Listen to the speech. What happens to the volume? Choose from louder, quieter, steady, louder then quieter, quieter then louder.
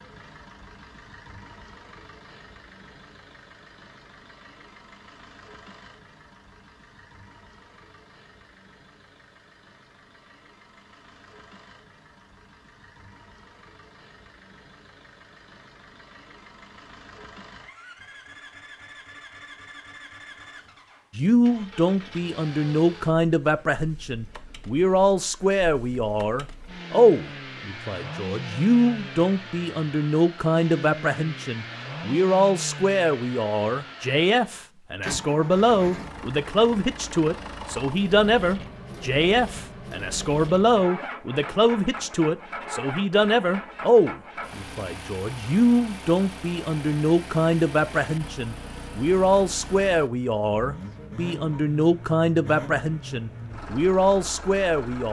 steady.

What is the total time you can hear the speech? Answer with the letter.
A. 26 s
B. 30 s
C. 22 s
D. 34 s
D.